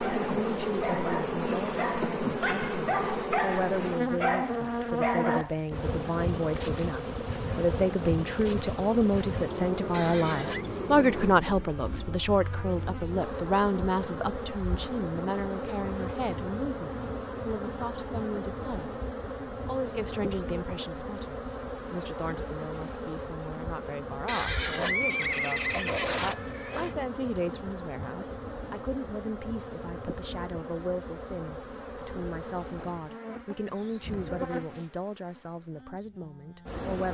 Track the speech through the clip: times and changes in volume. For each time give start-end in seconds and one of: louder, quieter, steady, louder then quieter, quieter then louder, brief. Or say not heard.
0.0-19.1 louder then quieter
19.6-37.0 steady.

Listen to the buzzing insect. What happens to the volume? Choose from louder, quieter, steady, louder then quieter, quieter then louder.
quieter.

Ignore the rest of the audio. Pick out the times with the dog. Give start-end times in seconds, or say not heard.
0.0-5.6.